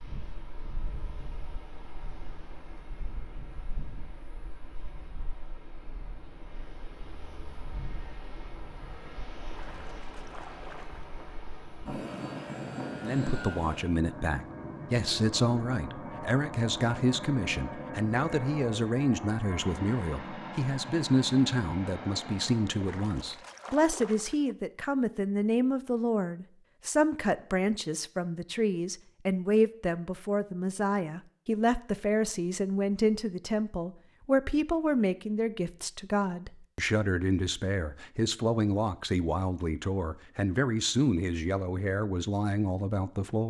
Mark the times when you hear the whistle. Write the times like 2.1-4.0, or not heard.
not heard.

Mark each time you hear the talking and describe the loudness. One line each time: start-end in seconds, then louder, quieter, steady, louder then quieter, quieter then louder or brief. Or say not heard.
13.0-43.4 steady.